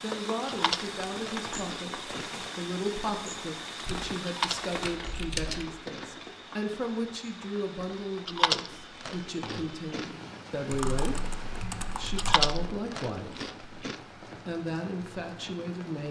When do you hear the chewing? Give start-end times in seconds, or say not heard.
0.5-2.5, 4.2-6.2, 8.2-10.1, 12.2-13.9.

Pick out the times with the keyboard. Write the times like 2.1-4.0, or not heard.
3.9-5.7, 10.7-12.5.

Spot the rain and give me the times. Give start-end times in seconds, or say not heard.
0.0-16.0.